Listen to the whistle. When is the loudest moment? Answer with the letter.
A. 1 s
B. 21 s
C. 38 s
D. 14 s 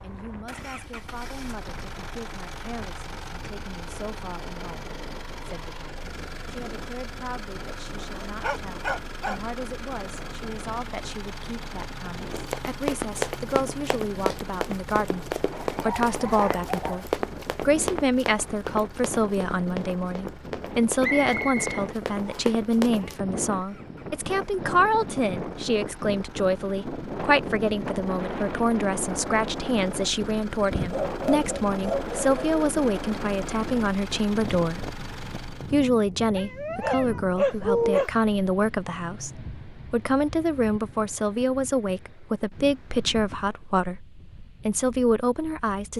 B.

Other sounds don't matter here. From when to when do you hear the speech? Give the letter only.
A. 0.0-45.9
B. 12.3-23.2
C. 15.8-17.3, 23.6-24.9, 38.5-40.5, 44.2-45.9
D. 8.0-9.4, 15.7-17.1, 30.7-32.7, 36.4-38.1
A.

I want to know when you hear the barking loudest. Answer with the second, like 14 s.
38 s.